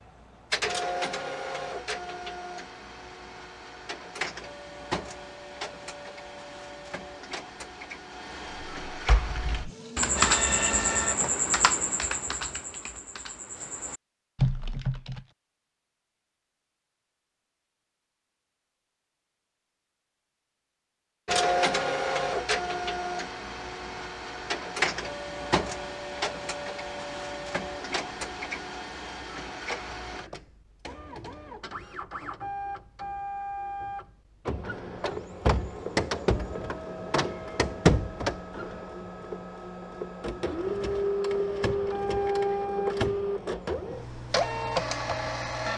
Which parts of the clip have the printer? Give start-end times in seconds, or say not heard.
0.0-11.3, 21.2-45.7.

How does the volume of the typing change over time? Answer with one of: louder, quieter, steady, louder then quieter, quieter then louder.
quieter then louder.